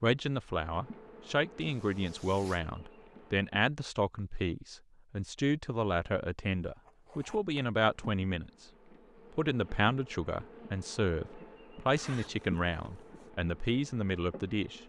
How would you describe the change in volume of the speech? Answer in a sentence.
The loudness of the speech stays about the same.